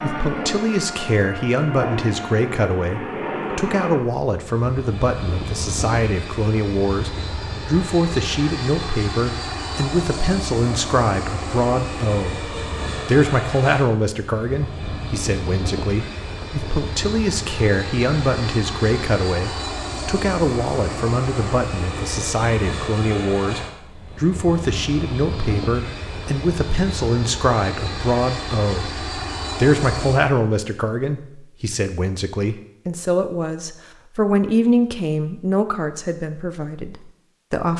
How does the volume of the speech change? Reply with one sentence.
The loudness of the speech stays about the same.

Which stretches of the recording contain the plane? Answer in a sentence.
The plane can be heard from 0.0 to 30.2 s.